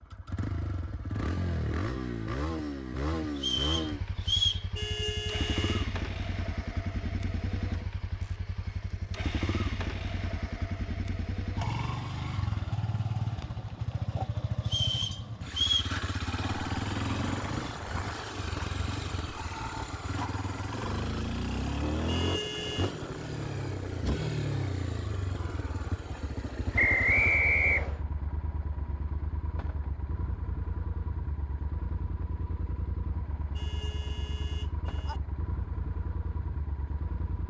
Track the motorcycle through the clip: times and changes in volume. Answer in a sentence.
The motorcycle can be heard from 0.0 to 37.4 s, getting quieter.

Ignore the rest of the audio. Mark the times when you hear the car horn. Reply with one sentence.
You can hear the car horn from 4.8 to 5.8 s, from 22.1 to 22.9 s and from 33.5 to 35.2 s.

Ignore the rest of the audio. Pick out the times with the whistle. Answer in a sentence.
You can hear the whistle from 3.4 to 4.7 s, from 14.7 to 15.9 s and from 26.8 to 28.0 s.